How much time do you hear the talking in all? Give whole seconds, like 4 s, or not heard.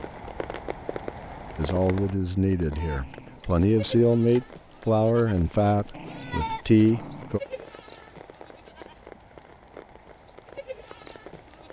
6 s.